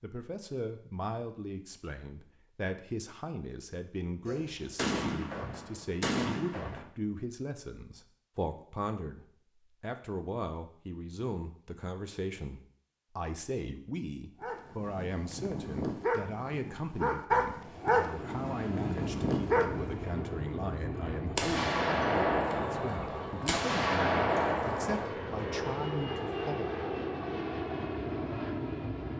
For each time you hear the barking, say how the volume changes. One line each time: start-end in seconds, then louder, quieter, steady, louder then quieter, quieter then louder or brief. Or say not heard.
14.4-20.1 louder.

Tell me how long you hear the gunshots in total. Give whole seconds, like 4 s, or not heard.
6 s.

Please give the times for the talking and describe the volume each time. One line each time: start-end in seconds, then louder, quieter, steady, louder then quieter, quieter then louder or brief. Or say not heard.
0.0-26.8 steady.